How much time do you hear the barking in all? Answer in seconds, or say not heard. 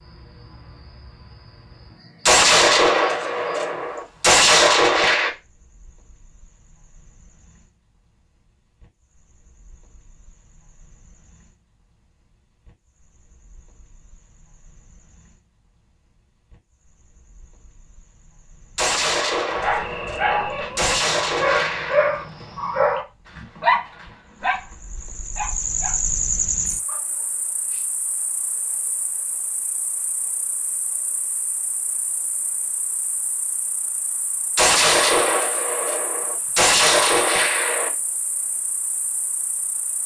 8 s.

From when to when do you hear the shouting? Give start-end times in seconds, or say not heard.
not heard.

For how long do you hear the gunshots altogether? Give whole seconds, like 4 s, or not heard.
10 s.